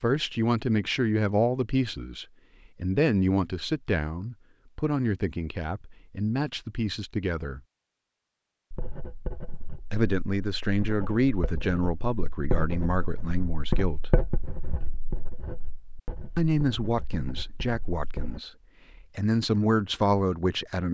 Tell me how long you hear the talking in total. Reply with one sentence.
The talking can be heard for 16 seconds in total.